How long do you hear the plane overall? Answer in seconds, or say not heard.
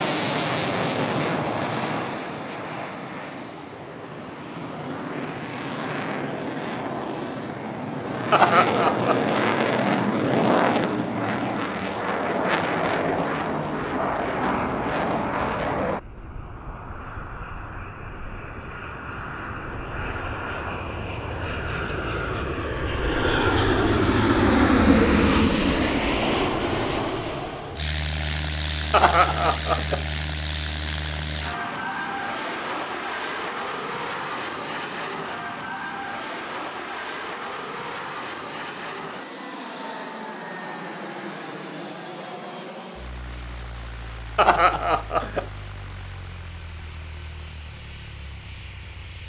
49 s.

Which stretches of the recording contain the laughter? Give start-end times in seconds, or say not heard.
8.3-9.3, 28.9-30.0, 44.4-45.5.